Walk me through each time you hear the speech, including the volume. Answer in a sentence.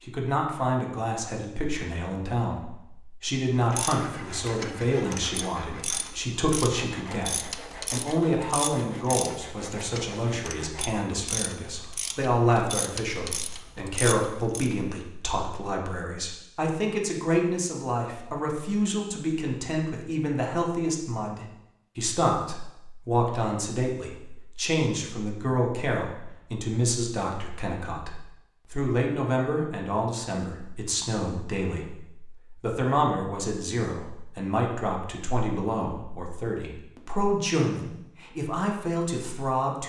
You can hear the speech from 0.0 to 39.8 s, at a steady volume.